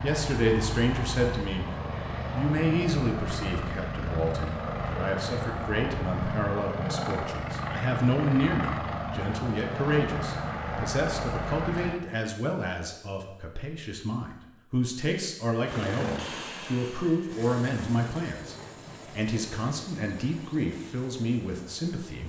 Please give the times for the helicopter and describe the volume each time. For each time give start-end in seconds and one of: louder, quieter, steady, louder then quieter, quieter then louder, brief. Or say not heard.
0.0-12.0 steady
15.6-22.2 quieter.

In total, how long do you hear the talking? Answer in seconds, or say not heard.
21 s.